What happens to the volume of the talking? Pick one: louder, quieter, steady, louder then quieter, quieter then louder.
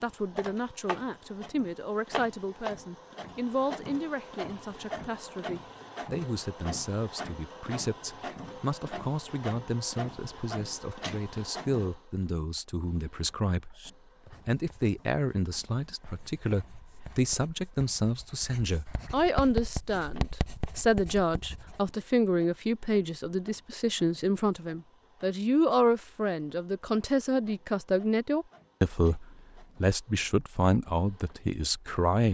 louder.